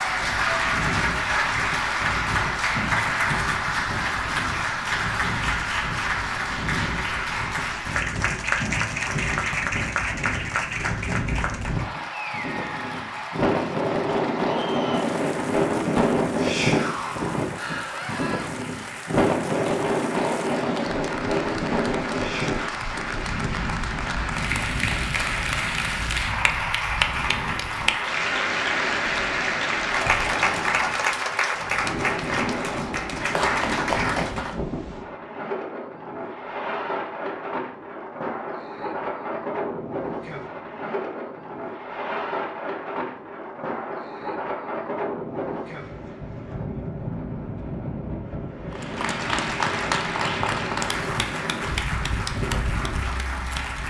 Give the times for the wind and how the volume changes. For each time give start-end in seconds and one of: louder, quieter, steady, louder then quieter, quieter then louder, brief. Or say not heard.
0.0-53.8 louder then quieter.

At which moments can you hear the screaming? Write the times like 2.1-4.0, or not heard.
17.9-18.5.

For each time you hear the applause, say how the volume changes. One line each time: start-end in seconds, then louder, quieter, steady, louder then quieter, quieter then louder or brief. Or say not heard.
0.0-34.5 quieter then louder
48.7-53.8 quieter.